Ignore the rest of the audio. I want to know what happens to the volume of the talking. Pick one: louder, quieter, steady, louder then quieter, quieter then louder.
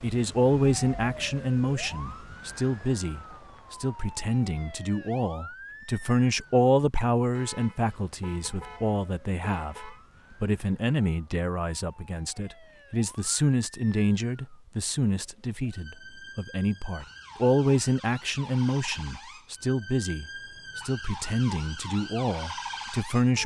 steady.